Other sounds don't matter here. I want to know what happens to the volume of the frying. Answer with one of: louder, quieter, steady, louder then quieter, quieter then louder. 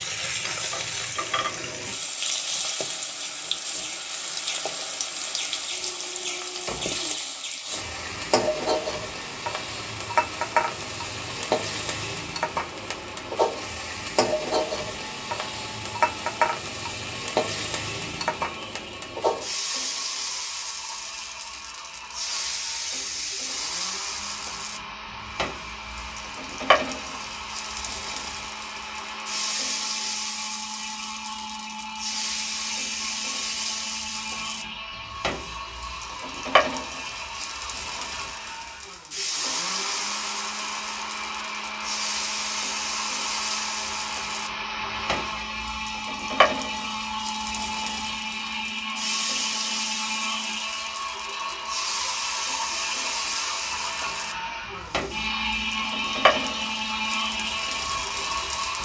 steady.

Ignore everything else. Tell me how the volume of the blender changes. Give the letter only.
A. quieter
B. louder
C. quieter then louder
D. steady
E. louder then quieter
B.